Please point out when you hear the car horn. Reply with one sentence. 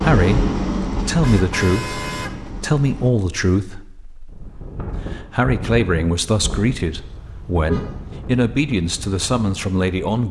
The car horn can be heard from 1.1 to 2.5 s and from 7.0 to 8.2 s.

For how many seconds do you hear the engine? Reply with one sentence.
The engine can be heard for 3 seconds in total.